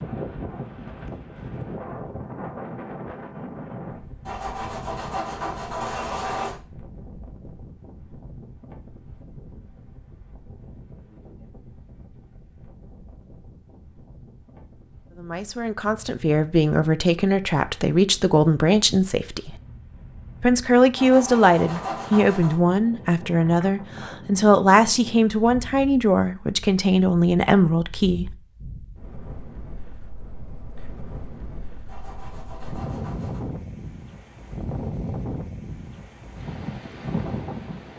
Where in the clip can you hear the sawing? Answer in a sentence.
You can hear the sawing from 4.2 to 6.5 s, from 20.9 to 22.6 s and from 31.9 to 33.5 s.